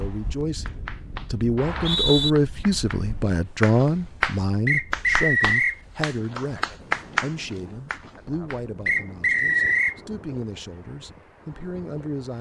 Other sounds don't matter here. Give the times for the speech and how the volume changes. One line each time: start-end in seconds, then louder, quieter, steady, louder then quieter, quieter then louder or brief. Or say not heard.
0.0-12.3 quieter.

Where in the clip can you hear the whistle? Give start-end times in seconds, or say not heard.
1.6-2.3, 4.7-5.8, 8.8-9.9.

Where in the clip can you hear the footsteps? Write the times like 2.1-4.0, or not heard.
not heard.